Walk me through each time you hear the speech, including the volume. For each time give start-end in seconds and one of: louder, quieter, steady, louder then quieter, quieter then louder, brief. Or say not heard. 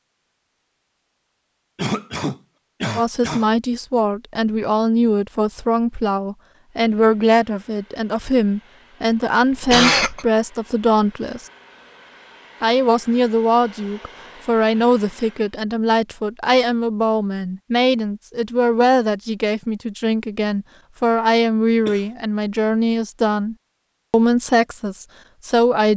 3.0-11.4 steady
12.6-25.9 steady.